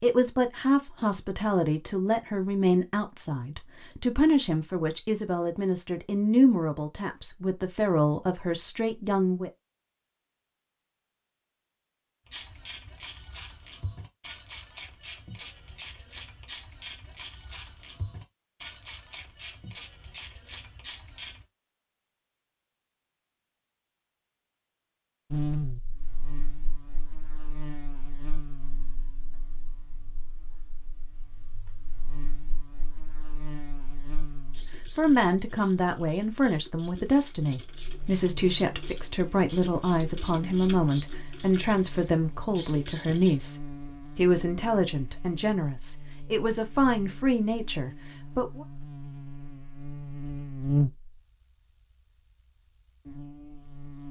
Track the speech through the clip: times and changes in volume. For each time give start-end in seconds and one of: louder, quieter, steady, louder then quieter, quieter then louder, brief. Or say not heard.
0.0-9.5 steady
35.0-48.6 steady.